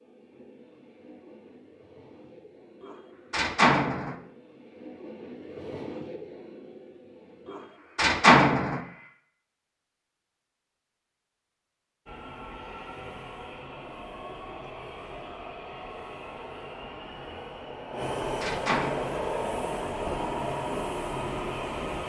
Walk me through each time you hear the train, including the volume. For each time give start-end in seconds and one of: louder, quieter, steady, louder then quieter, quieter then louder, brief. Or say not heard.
0.0-9.1 louder then quieter
12.1-22.0 louder.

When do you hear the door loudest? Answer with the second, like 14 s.
8 s.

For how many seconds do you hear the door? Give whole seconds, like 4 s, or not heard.
4 s.